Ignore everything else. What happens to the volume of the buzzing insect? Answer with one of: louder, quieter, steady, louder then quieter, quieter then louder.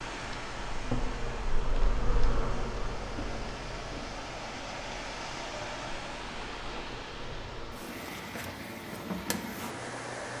quieter then louder.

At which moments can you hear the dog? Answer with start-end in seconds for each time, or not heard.
not heard.